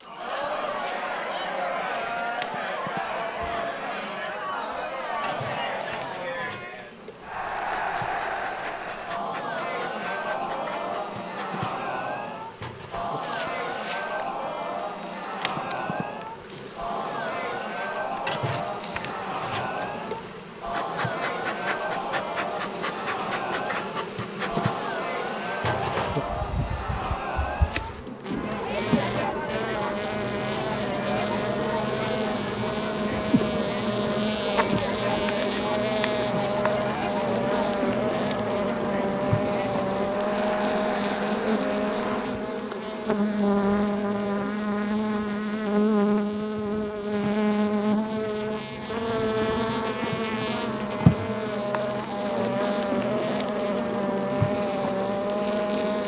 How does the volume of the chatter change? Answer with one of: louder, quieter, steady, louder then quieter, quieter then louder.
steady.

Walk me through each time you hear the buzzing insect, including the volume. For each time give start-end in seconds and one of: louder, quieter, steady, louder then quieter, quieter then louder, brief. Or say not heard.
0.0-56.0 louder.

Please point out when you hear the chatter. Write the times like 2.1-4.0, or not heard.
0.0-42.5.